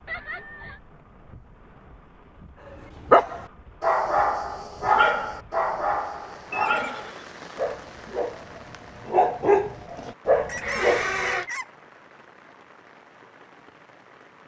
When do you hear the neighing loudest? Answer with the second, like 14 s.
11 s.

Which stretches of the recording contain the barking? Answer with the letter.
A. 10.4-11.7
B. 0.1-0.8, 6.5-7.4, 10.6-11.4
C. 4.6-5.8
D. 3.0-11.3
D.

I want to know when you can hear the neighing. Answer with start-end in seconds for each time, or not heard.
0.1-0.8, 6.5-7.4, 10.6-11.4.